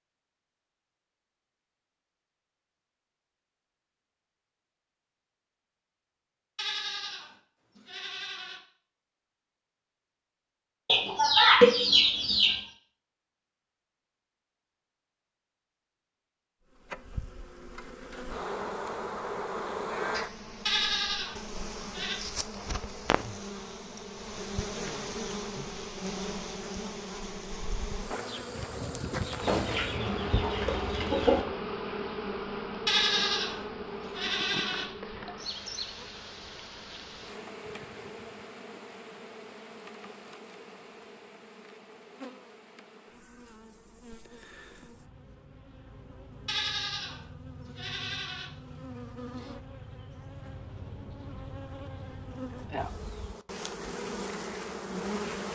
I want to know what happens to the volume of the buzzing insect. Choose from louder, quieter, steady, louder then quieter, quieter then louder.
quieter then louder.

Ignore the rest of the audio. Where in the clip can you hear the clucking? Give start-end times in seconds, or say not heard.
10.8-12.6, 29.4-31.4.